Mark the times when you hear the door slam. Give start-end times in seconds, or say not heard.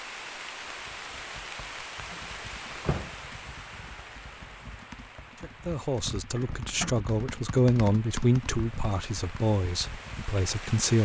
2.1-3.1, 6.3-7.0.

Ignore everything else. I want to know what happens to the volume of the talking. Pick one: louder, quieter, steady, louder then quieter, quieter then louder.
louder then quieter.